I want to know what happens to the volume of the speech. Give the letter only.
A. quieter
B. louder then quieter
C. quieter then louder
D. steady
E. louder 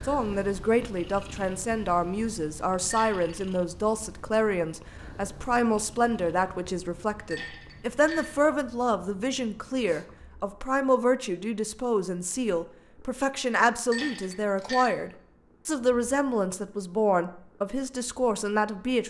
D.